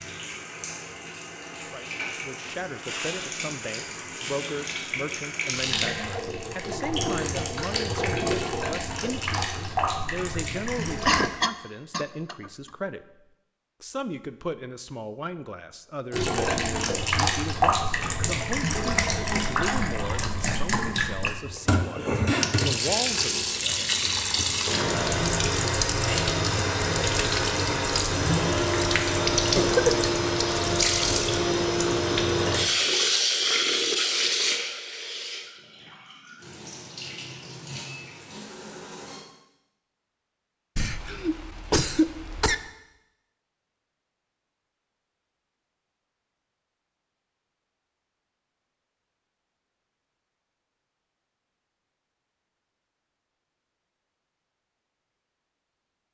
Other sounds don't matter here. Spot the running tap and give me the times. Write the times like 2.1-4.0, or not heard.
0.0-11.3, 16.1-39.2.